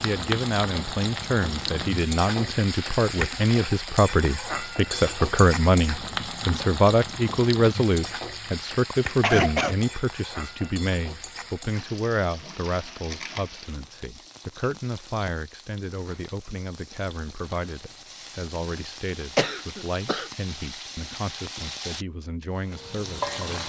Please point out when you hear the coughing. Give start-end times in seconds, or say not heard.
9.2-9.8, 19.4-20.2.